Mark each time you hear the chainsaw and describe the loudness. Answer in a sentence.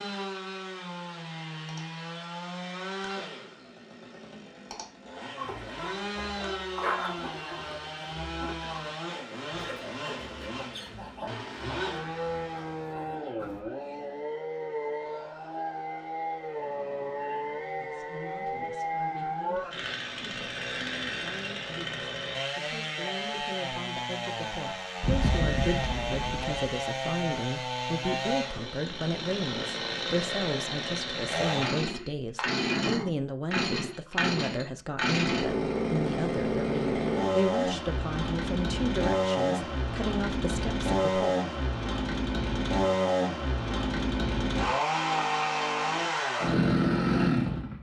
You can hear the chainsaw from 0.0 to 47.7 s, getting louder.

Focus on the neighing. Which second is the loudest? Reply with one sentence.
The loudest moment of the neighing is at 25 seconds.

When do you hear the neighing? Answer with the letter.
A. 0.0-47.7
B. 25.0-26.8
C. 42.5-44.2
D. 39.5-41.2
B.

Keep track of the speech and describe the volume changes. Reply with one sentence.
The volume of the speech goes up.